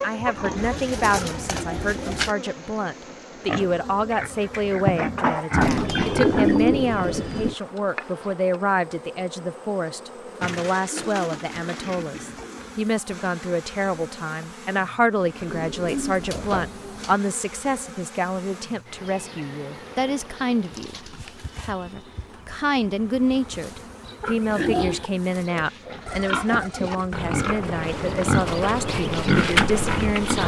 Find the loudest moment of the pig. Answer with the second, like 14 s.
29 s.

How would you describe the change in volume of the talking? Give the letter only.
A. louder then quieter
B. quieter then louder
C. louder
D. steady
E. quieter
D.